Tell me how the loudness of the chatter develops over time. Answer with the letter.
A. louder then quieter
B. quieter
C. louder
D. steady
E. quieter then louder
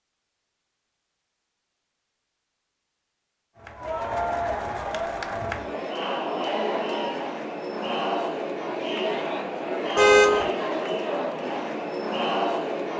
D.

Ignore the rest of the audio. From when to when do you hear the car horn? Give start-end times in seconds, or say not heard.
9.9-10.5.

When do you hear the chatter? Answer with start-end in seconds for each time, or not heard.
3.5-12.9.